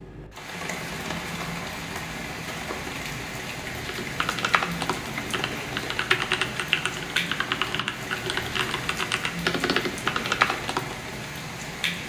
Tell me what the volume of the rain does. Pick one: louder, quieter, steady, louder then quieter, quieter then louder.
steady.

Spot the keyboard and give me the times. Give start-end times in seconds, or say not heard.
3.9-10.9.